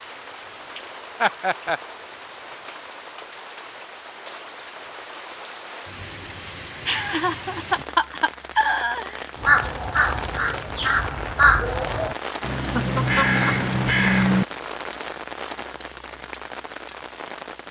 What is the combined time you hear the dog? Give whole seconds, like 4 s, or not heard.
not heard.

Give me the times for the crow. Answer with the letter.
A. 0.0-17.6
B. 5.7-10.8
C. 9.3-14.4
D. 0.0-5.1
C.